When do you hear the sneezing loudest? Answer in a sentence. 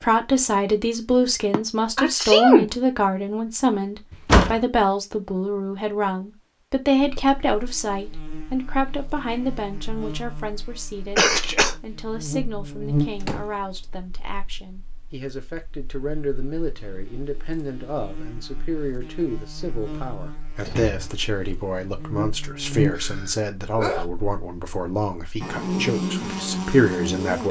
The loudest moment of the sneezing is at 2 seconds.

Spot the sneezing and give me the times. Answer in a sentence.
You can hear the sneezing from 1.5 to 2.7 s, from 11.2 to 11.8 s and from 22.9 to 24.1 s.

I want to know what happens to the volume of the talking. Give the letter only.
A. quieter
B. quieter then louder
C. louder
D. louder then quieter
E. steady
B.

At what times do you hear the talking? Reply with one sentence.
You can hear the talking from 0.0 to 11.2 s and from 11.8 to 27.4 s.